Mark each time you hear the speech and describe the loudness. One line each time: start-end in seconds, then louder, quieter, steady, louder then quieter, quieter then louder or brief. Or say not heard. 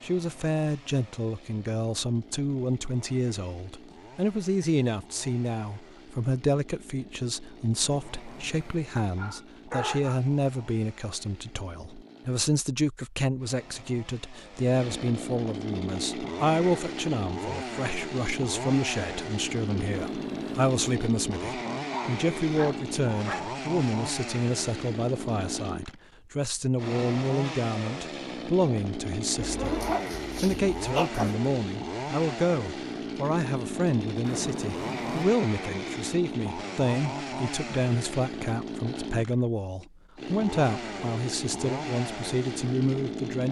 0.0-43.4 steady.